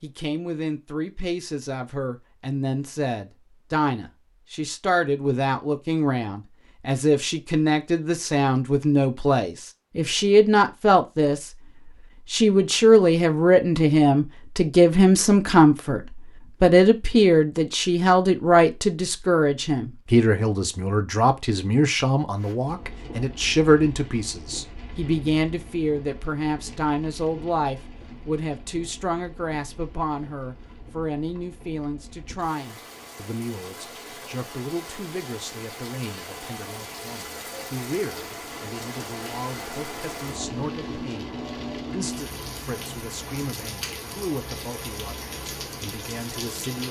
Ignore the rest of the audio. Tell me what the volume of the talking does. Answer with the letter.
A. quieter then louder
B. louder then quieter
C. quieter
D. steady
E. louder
B.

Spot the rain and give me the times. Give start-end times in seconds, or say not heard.
22.4-46.8.